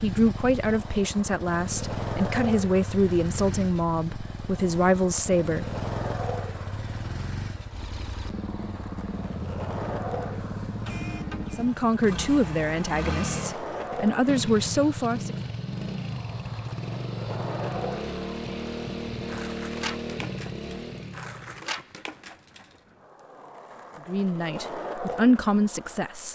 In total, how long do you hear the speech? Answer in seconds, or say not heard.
12 s.